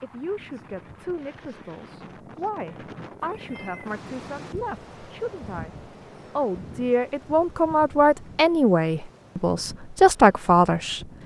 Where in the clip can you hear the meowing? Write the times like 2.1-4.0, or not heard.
3.2-4.0.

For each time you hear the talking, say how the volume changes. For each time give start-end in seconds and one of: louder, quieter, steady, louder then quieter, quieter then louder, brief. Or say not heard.
0.0-11.1 louder.